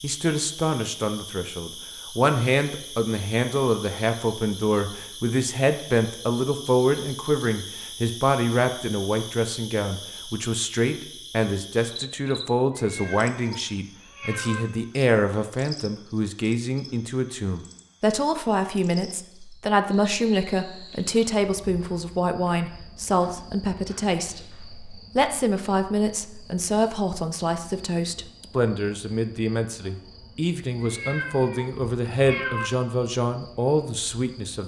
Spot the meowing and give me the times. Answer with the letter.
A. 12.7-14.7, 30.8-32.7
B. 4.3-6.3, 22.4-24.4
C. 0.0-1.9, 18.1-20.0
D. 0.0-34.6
A.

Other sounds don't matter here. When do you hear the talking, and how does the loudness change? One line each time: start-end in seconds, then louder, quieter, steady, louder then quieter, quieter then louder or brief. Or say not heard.
0.0-34.6 steady.